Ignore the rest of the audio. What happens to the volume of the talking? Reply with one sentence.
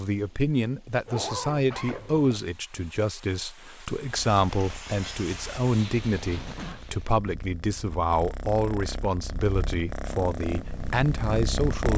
The volume of the talking stays about the same.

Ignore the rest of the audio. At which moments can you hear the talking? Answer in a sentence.
The talking can be heard from 0.0 to 11.9 s.